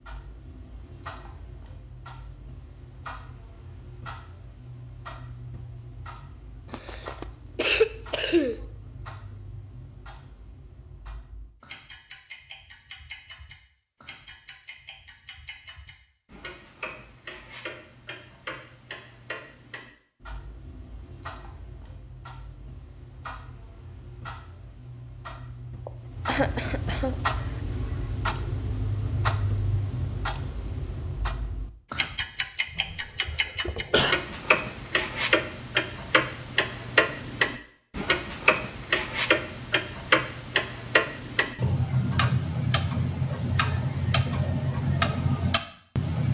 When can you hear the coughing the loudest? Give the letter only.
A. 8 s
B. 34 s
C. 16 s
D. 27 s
A.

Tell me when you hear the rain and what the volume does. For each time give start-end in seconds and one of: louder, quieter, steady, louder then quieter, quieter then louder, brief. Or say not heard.
not heard.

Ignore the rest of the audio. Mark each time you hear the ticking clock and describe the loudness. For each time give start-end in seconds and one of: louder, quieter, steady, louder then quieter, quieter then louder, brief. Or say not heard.
0.0-46.2 louder.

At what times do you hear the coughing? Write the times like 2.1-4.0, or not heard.
6.7-8.6, 25.9-27.1, 32.8-34.1.